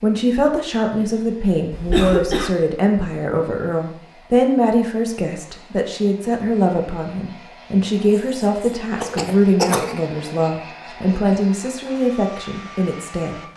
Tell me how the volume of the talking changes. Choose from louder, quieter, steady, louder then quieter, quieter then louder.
steady.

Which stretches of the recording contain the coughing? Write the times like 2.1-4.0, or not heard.
1.7-2.5, 8.2-10.0.